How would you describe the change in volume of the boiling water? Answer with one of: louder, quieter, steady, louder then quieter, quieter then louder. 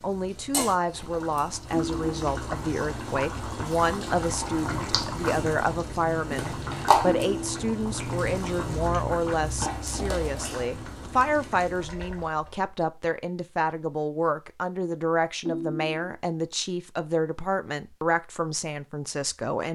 louder then quieter.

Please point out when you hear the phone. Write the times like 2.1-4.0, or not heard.
1.7-2.2, 7.0-7.7, 15.4-16.1.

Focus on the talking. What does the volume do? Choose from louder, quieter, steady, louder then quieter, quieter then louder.
steady.